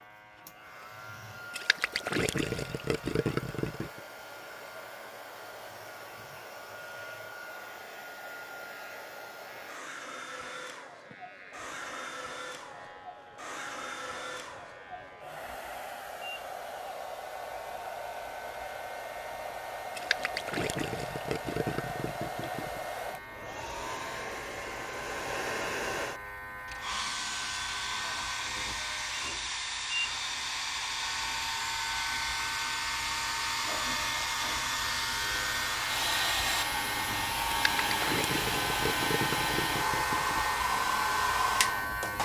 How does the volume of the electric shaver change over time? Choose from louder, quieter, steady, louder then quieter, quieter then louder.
louder.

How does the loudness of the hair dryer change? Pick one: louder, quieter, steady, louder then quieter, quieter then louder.
louder.